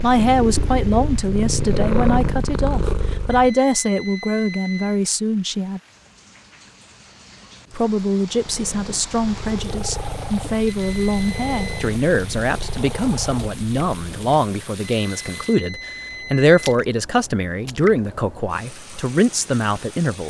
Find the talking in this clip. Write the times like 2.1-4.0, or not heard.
0.0-5.8, 7.7-20.2.